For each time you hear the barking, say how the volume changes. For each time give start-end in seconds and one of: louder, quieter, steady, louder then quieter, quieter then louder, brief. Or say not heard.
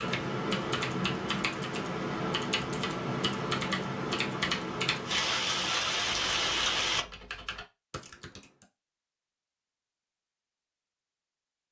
not heard.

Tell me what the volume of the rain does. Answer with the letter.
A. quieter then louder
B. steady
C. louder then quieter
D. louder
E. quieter
D.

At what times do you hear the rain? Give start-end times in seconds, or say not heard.
0.1-7.0.